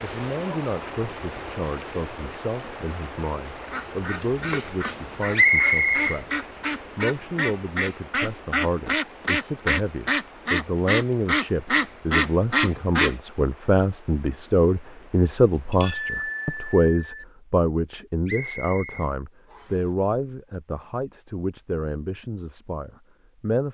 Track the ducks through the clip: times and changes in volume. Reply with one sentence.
The ducks can be heard from 3.5 to 13.2 s, getting louder.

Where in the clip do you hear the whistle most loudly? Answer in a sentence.
The volume of the whistle peaks at 6 seconds.